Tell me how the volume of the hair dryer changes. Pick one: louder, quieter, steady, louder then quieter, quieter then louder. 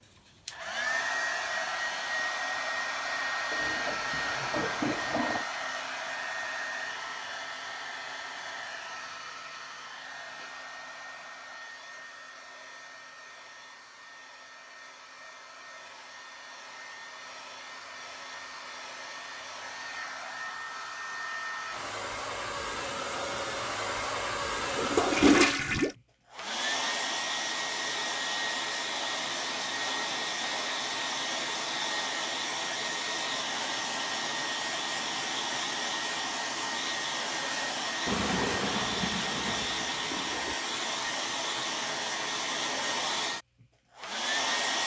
quieter then louder.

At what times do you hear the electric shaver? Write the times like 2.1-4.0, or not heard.
not heard.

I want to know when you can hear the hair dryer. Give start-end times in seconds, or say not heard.
0.0-44.8.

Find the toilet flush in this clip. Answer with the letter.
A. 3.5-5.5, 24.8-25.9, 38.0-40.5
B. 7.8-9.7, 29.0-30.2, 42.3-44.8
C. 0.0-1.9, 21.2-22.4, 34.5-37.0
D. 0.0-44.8
A.